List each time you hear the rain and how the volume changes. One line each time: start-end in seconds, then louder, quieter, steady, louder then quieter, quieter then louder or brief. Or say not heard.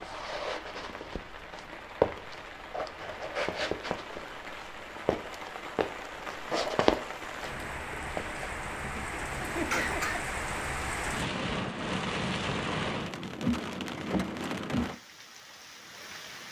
0.0-16.4 louder.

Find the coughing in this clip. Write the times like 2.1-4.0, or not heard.
8.8-10.2.